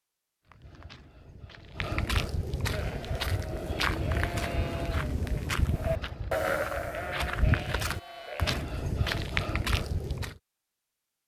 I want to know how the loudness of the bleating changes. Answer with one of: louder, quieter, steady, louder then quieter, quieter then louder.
louder then quieter.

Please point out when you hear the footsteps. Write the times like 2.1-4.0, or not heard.
0.5-10.3.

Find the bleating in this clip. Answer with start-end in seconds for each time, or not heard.
2.7-8.7.